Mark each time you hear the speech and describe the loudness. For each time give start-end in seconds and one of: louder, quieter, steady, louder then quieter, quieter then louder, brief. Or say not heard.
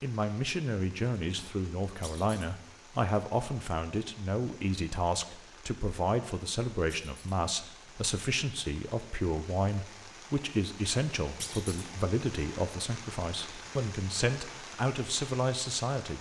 0.0-16.1 steady.